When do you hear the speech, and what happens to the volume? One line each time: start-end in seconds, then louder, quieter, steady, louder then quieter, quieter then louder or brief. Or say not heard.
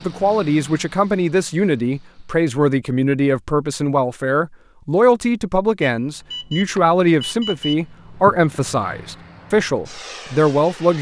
0.0-10.9 steady.